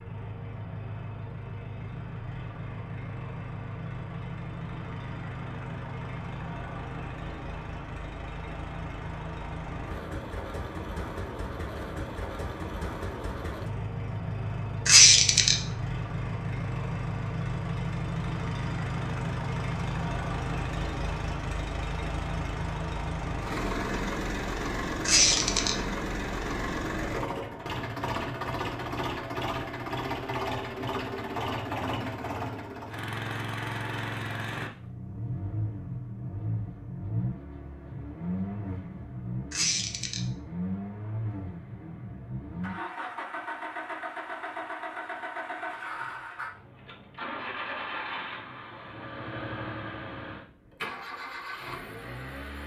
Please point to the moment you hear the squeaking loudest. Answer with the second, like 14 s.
15 s.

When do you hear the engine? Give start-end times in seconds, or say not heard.
0.0-52.6.